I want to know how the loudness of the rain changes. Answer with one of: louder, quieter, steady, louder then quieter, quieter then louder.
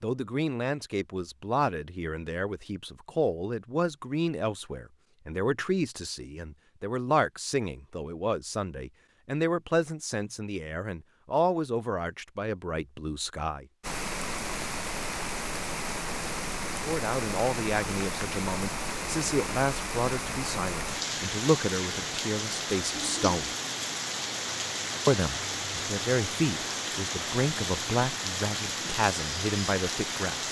steady.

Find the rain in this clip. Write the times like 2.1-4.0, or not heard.
13.8-30.4.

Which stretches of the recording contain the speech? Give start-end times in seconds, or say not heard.
0.0-13.7, 16.8-23.5, 25.1-30.4.